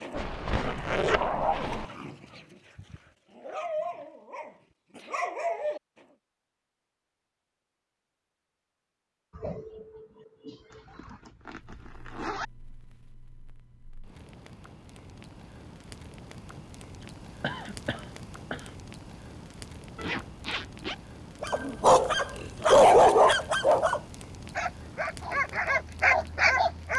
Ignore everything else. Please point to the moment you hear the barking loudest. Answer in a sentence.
The loudest moment of the barking is at 23 seconds.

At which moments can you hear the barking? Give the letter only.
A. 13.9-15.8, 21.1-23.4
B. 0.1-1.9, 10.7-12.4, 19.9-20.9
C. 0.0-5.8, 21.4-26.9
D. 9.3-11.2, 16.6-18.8
C.